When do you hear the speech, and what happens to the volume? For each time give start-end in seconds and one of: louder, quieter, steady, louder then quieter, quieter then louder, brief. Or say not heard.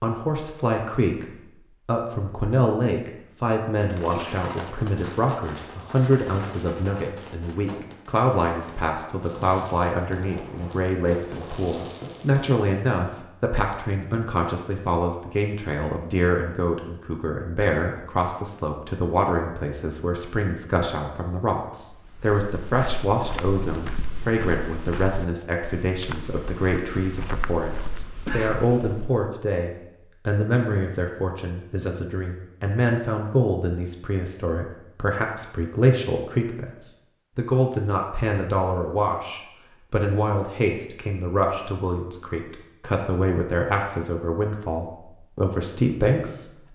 0.0-46.6 steady.